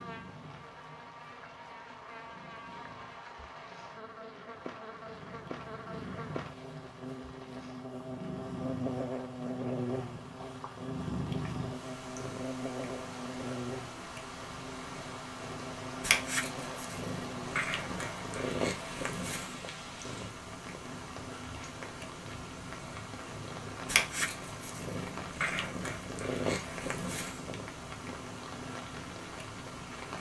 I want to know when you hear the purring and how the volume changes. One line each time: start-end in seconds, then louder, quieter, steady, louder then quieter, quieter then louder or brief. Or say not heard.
0.0-30.1 louder.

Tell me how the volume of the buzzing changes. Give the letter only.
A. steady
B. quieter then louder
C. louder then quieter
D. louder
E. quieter
C.